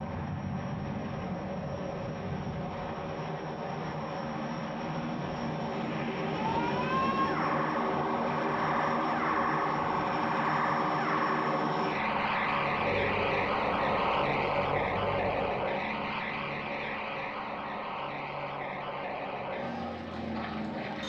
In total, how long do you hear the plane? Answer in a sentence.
The plane can be heard for 21 seconds in total.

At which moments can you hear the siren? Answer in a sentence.
The siren can be heard from 6.2 to 15.7 s.